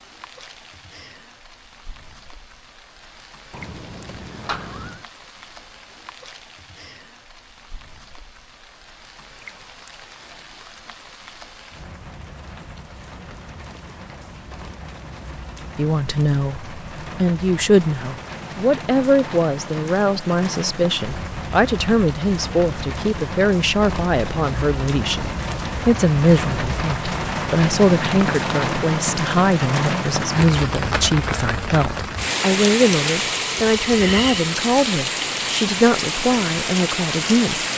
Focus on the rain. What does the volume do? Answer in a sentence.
The loudness of the rain goes up.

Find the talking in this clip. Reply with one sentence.
You can hear the talking from 15.8 to 37.6 s.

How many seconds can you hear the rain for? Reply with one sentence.
You can hear the rain for 38 seconds altogether.